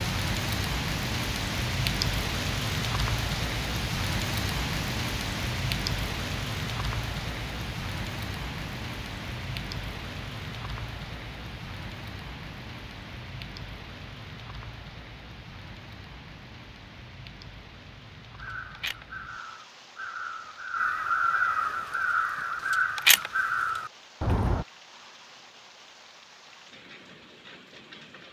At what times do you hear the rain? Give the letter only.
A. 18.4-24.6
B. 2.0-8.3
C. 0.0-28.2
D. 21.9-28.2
C.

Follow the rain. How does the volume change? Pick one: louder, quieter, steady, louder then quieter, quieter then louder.
quieter.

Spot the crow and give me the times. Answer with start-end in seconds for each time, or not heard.
18.4-24.6.